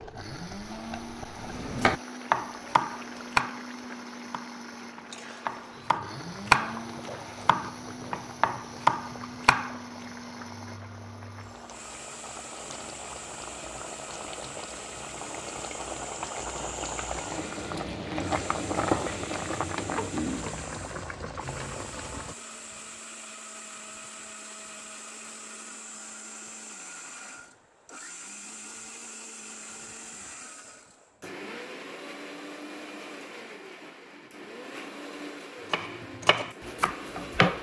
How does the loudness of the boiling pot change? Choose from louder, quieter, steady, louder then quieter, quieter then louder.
louder.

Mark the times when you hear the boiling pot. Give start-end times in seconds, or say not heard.
0.0-22.4.